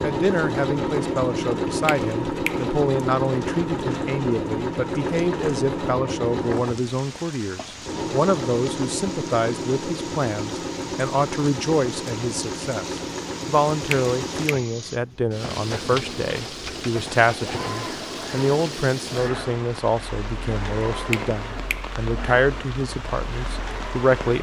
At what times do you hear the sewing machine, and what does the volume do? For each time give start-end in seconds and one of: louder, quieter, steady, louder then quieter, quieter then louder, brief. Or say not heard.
0.0-24.3 quieter.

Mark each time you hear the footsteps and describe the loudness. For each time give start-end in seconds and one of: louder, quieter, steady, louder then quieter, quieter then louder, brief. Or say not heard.
not heard.